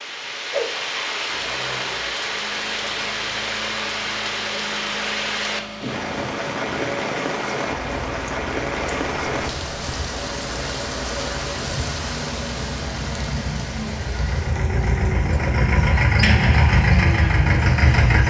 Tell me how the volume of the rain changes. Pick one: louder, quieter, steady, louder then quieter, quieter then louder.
quieter.